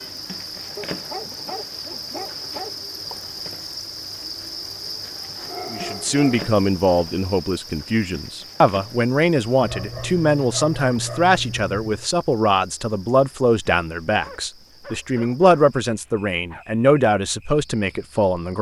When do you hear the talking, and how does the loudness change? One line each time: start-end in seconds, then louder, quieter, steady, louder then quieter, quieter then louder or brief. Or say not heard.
5.7-18.5 steady.